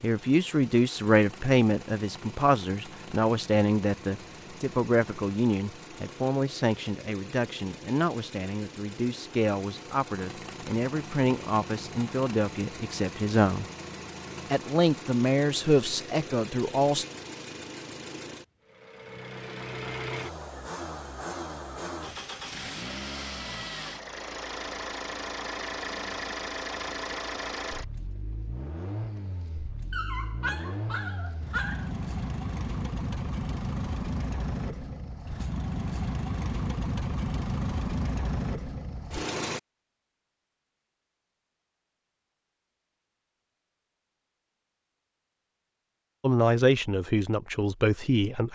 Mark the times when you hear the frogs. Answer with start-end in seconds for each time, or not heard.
not heard.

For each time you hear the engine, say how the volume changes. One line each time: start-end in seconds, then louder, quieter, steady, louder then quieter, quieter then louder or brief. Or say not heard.
0.0-39.6 louder.